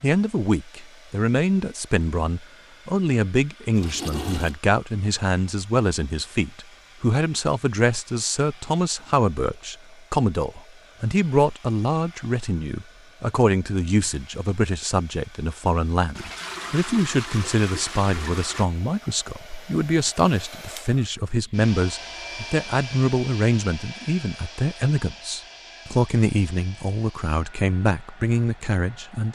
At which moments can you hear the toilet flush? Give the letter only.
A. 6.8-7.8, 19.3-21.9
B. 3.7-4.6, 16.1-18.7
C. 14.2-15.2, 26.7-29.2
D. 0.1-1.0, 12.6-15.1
B.